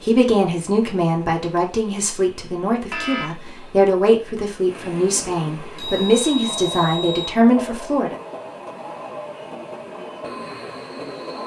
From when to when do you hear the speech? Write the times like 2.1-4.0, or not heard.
0.0-8.2.